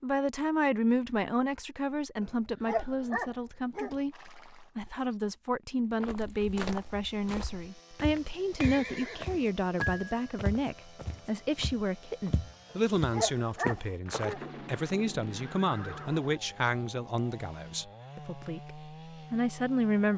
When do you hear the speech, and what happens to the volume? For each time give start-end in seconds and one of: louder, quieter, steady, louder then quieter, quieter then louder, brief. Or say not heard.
0.0-20.1 steady.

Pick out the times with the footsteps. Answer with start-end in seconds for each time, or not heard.
5.8-14.4.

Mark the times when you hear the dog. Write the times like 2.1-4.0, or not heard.
2.2-4.0, 12.7-14.4.